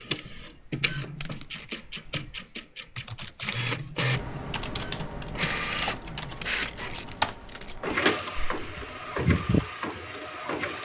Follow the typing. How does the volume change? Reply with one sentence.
The volume of the typing goes up, then down.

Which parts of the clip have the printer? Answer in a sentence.
You can hear the printer from 0.0 to 10.7 s.